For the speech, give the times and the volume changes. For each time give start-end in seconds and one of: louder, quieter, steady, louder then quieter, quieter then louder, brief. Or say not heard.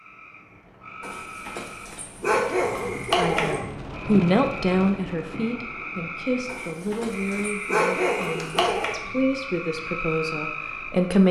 3.1-11.2 quieter.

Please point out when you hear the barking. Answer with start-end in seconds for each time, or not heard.
1.0-3.6, 6.5-9.0.